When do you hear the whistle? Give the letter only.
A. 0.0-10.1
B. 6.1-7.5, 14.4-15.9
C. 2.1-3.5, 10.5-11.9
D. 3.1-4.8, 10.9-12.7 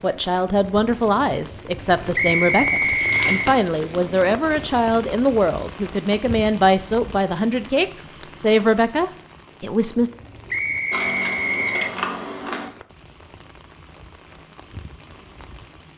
C.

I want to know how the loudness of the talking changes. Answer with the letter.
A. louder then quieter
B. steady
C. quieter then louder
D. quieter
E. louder
B.